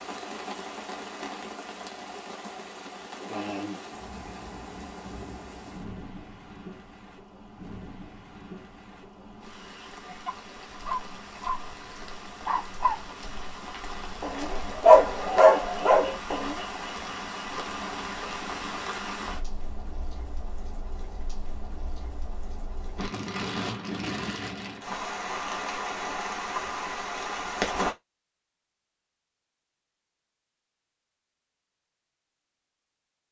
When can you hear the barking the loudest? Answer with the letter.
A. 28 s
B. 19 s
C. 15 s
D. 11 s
C.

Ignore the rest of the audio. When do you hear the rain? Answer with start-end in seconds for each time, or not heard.
0.0-27.9.